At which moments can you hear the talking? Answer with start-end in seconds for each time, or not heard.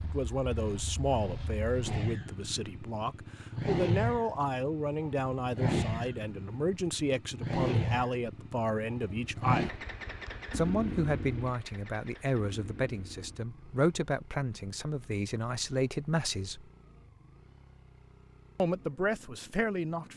0.0-9.8, 10.5-16.7, 18.6-20.1.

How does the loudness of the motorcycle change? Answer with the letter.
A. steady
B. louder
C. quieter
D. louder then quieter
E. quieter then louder
C.